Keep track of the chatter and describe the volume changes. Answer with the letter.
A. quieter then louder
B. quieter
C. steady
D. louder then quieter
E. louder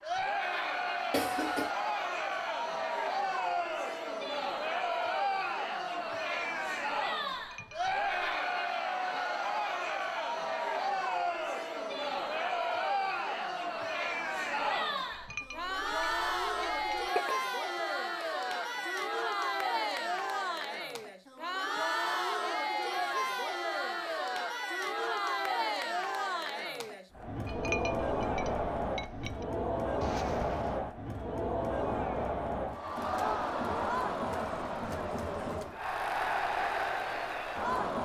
C.